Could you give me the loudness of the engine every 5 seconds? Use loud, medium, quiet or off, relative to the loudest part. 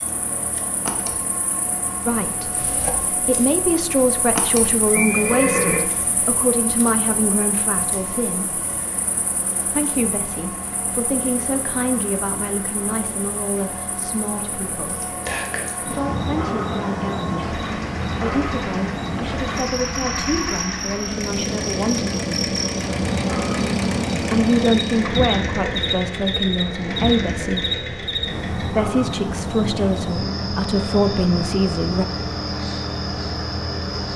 medium, medium, medium, medium, loud, loud, medium.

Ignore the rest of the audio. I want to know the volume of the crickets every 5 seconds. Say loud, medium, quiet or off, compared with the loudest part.
medium, quiet, quiet, loud, loud, loud, loud.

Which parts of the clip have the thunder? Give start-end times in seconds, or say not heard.
not heard.